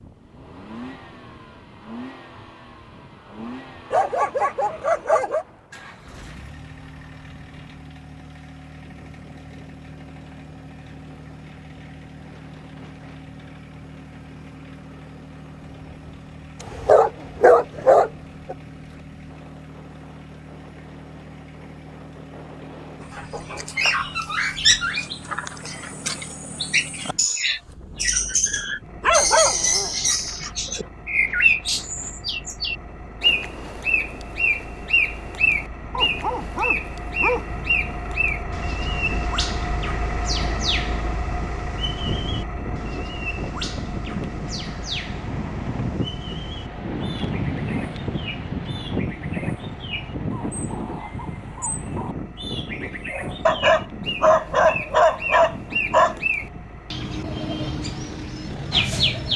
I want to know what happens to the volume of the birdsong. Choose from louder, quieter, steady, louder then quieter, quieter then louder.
quieter then louder.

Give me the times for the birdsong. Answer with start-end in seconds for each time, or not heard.
23.1-59.3.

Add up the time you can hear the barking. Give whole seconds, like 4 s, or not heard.
9 s.